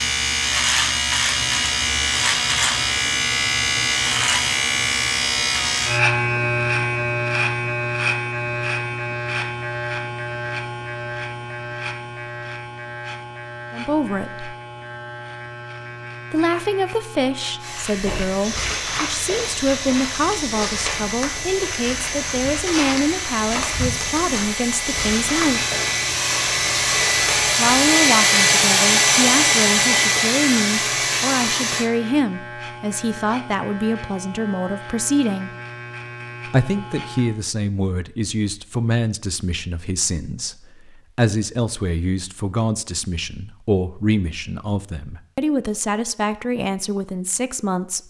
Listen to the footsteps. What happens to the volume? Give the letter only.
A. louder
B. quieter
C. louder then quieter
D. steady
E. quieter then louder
D.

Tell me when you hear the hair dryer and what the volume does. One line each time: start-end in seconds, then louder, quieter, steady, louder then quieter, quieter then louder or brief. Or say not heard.
17.6-31.9 louder.